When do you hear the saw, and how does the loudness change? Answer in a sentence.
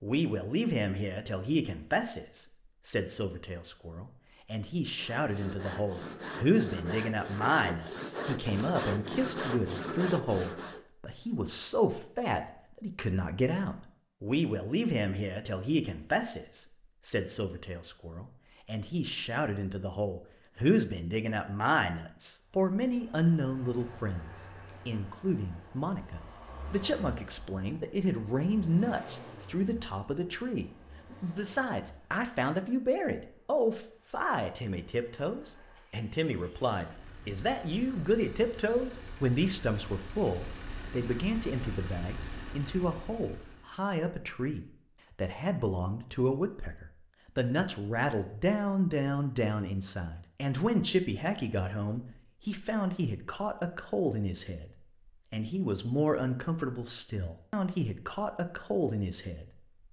You can hear the saw from 4.8 to 10.8 s, getting louder.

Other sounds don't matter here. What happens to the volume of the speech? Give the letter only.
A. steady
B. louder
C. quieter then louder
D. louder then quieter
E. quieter
A.